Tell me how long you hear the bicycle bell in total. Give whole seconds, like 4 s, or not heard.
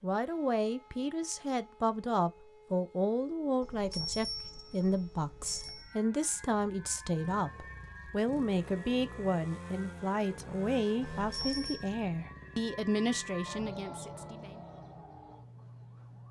3 s.